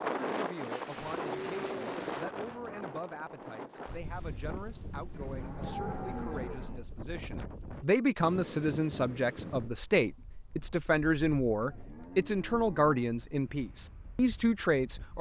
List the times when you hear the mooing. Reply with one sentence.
The mooing can be heard from 1.2 to 2.9 s, from 5.1 to 6.8 s and from 11.6 to 13.1 s.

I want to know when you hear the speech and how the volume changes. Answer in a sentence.
The speech can be heard from 0.2 to 15.1 s, getting louder.